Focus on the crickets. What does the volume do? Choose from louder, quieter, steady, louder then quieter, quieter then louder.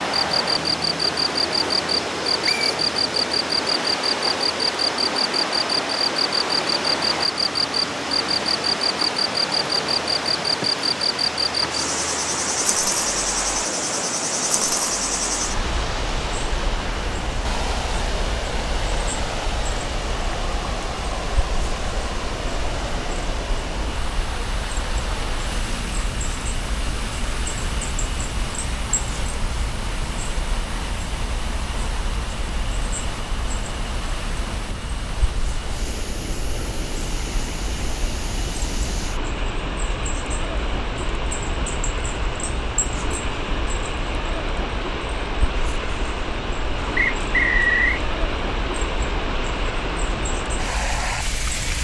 quieter.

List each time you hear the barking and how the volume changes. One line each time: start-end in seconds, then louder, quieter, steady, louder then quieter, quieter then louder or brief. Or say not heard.
not heard.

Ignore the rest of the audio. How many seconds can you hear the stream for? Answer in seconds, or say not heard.
52 s.